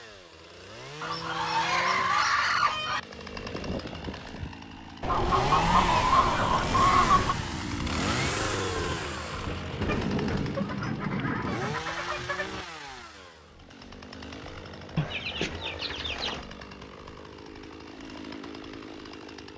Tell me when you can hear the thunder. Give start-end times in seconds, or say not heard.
8.8-11.8.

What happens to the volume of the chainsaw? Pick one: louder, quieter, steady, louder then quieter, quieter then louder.
louder then quieter.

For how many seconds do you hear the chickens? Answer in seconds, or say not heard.
9 s.